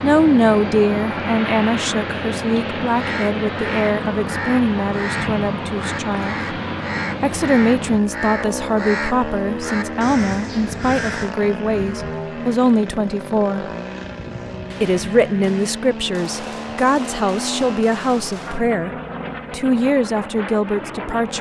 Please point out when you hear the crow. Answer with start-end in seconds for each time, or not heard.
2.9-11.3.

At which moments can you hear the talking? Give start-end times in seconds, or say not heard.
0.0-6.4, 7.2-13.7, 14.8-18.9, 19.5-21.3.